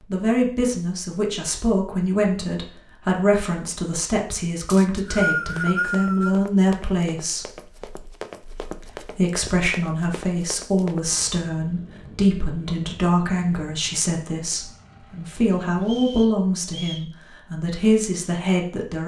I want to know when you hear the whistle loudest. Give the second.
5 s.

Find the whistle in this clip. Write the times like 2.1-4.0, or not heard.
4.7-6.3, 15.8-17.1.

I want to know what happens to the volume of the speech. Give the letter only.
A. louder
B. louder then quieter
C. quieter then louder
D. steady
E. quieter
D.